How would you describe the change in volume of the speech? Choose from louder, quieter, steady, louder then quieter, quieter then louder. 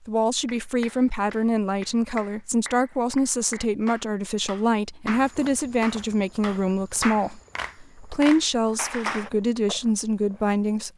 steady.